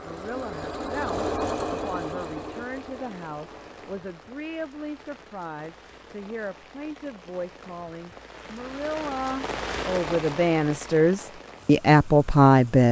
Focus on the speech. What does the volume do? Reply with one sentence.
The volume of the speech goes up.